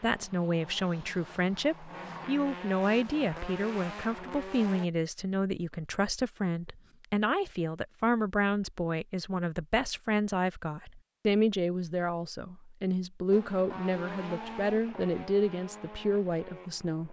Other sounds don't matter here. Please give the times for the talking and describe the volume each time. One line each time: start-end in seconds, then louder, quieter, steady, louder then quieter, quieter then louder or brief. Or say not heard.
0.0-17.0 steady.